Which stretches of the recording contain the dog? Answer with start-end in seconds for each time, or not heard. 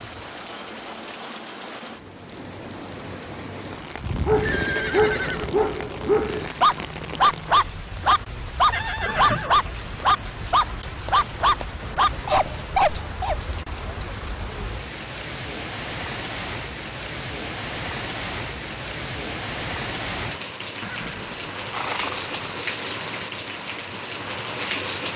4.0-13.3.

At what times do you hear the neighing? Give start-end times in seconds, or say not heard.
4.3-5.5, 8.7-9.6, 20.8-22.3.